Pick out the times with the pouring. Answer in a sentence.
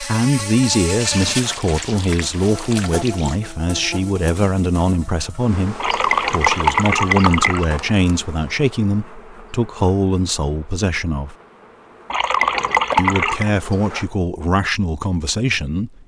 The pouring can be heard from 1.0 to 3.4 s, from 5.8 to 7.7 s and from 12.1 to 13.5 s.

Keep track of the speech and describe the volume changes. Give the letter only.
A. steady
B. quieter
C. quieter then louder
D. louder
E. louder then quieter
A.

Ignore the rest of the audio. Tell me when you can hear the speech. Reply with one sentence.
You can hear the speech from 0.0 to 11.3 s and from 12.9 to 16.0 s.